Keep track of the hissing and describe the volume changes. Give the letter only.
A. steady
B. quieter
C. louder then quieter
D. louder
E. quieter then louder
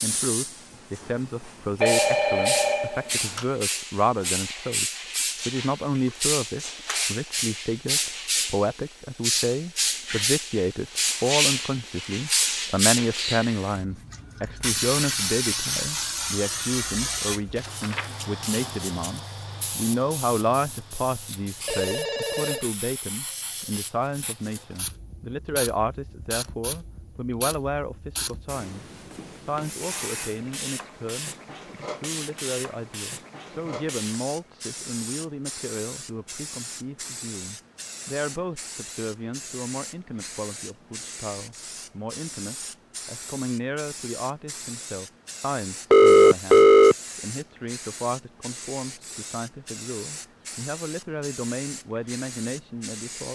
B.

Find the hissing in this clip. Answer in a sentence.
The hissing can be heard from 0.0 to 53.3 s.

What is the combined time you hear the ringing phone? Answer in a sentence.
The ringing phone can be heard for 4 seconds in total.